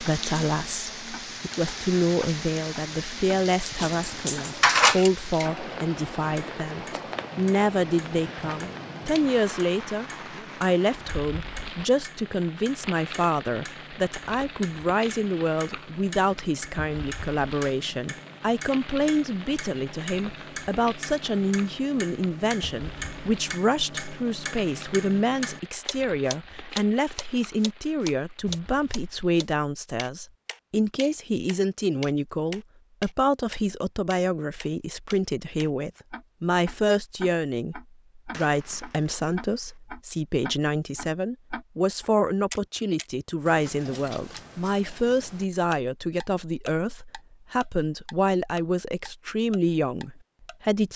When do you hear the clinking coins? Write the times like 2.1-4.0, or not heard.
3.8-5.1, 38.2-39.7.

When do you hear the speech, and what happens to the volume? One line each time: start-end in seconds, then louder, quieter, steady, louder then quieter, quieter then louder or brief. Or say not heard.
0.0-50.9 steady.